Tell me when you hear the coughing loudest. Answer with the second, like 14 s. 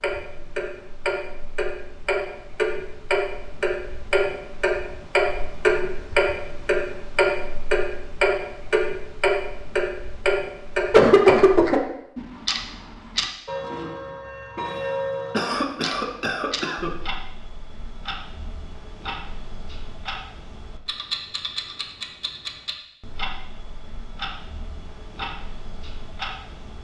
11 s.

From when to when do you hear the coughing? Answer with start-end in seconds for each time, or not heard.
10.9-11.8, 15.3-16.9.